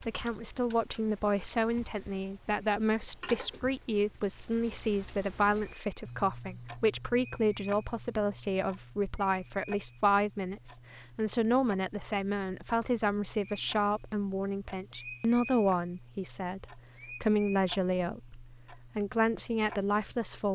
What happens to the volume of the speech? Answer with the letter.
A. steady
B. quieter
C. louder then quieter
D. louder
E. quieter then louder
A.